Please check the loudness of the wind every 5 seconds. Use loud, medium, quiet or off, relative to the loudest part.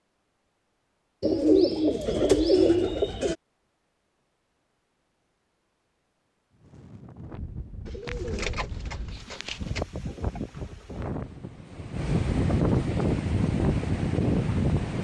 off, quiet, loud.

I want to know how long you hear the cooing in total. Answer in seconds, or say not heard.
4 s.